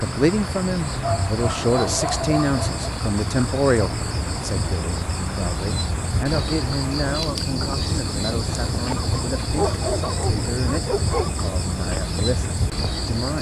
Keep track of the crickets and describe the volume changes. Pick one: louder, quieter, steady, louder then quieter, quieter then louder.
steady.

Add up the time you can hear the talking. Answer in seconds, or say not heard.
13 s.